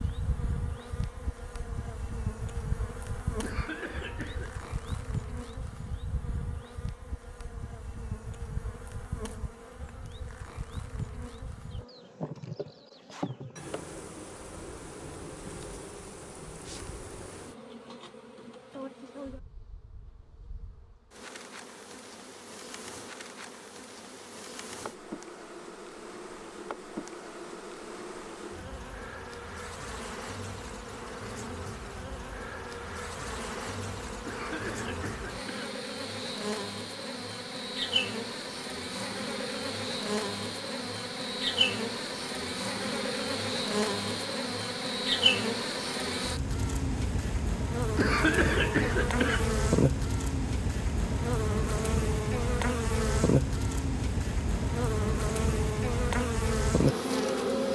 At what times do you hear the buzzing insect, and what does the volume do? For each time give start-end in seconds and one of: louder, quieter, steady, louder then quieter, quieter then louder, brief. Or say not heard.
0.0-57.6 louder.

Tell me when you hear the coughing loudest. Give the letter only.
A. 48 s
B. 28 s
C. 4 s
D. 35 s
A.